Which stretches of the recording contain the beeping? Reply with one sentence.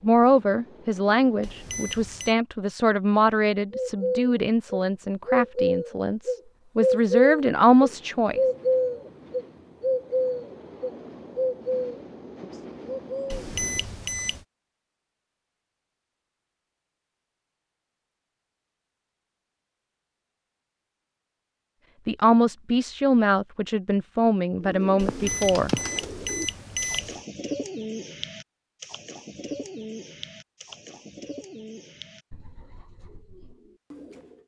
The beeping can be heard from 1.4 to 2.4 s, from 13.3 to 14.4 s and from 24.9 to 27.2 s.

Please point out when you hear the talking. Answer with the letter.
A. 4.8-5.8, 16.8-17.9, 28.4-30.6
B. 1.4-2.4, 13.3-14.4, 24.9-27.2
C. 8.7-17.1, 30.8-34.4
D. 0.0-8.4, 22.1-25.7
D.